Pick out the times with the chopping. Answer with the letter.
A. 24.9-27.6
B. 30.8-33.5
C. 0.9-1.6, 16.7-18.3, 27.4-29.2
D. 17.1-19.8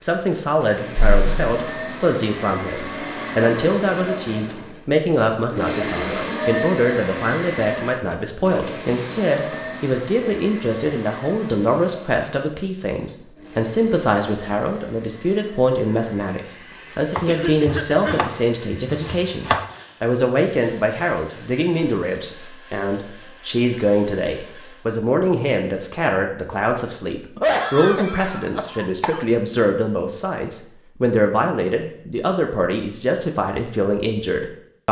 D.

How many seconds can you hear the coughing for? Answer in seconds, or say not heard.
4 s.